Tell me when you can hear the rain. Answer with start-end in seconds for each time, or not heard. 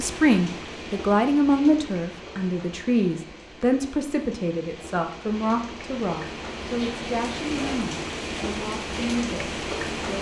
0.0-10.1.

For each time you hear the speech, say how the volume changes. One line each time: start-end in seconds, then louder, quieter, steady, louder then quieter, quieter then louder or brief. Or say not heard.
0.0-10.1 quieter.